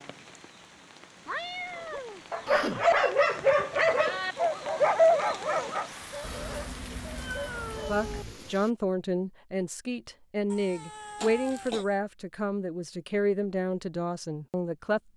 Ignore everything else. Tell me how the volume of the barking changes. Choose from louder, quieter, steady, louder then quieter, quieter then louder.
quieter.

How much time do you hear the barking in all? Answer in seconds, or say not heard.
7 s.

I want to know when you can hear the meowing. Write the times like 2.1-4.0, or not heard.
1.2-3.1, 6.2-8.2, 10.5-11.9.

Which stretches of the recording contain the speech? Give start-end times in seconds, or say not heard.
7.8-15.0.